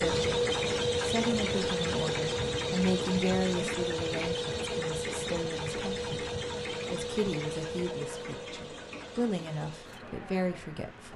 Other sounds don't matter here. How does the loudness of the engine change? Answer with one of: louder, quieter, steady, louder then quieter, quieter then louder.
quieter.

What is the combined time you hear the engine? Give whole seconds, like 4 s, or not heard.
11 s.